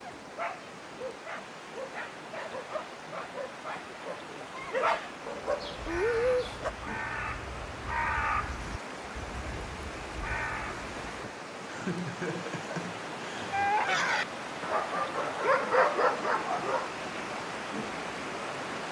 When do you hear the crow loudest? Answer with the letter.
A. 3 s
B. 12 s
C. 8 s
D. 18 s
C.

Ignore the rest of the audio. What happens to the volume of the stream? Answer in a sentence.
The volume of the stream goes up.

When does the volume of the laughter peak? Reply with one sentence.
The volume of the laughter peaks at 12 seconds.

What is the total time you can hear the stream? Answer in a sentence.
The stream can be heard for 19 seconds in total.